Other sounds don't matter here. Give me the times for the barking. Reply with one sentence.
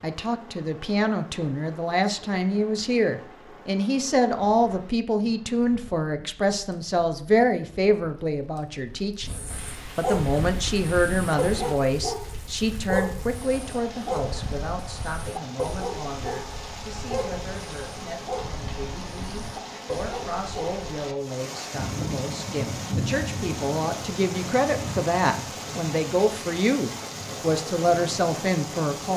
You can hear the barking from 9.2 to 20.8 s.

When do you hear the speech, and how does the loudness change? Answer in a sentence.
You can hear the speech from 0.0 to 9.3 s, at a steady volume; and from 9.9 to 29.1 s, getting quieter then louder.